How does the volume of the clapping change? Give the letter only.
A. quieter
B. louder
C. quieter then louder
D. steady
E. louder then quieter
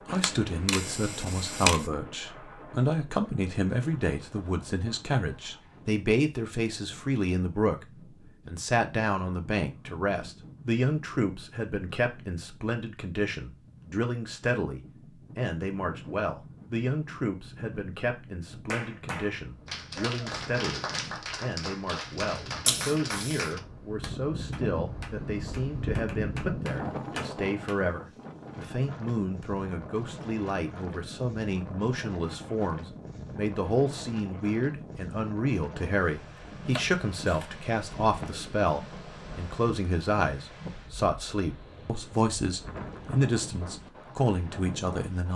C.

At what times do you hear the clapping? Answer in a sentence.
You can hear the clapping from 18.7 to 27.8 s.